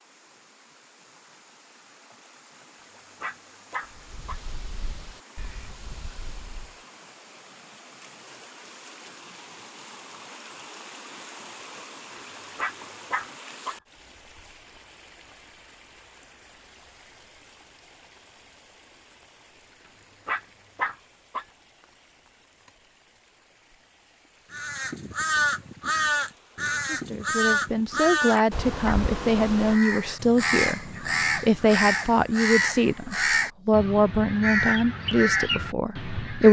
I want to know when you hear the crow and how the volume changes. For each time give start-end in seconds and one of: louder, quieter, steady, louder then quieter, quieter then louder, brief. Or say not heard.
3.9-6.8 brief
24.5-36.4 steady.